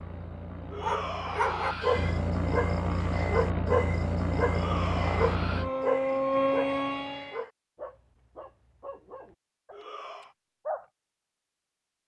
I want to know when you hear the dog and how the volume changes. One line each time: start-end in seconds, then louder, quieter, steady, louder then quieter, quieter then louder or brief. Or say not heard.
0.8-10.8 quieter.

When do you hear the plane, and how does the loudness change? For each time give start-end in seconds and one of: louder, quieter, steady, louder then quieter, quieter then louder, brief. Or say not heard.
0.0-7.4 louder.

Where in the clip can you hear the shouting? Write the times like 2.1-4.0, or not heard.
0.7-2.2, 4.5-5.7, 9.7-10.3.